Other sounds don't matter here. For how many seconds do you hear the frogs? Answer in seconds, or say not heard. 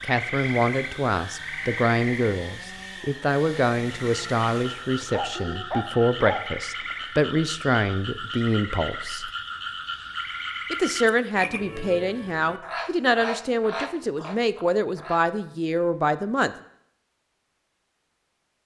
15 s.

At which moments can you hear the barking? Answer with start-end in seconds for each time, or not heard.
5.1-7.0.